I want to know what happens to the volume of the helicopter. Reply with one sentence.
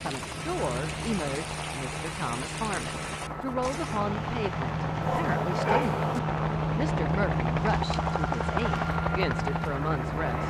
The volume of the helicopter goes up.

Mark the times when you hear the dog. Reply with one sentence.
You can hear the dog from 5.0 to 6.2 s.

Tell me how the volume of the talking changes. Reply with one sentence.
The loudness of the talking stays about the same.